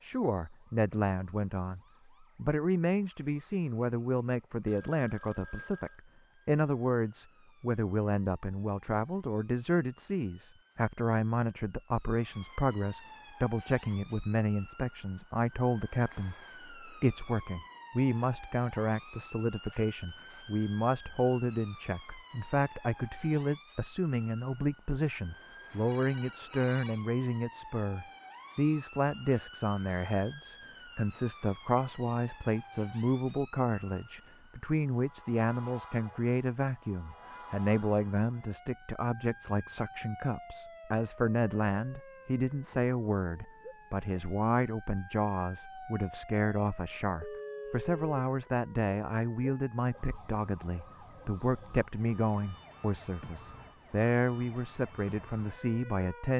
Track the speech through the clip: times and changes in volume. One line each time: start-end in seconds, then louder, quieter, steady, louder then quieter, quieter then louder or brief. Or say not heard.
0.0-56.3 steady.